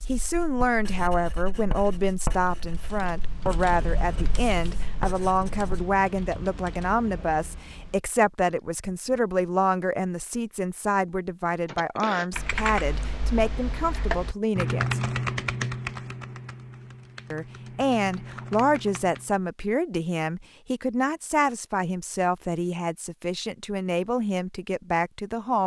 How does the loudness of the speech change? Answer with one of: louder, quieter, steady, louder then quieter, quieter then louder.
steady.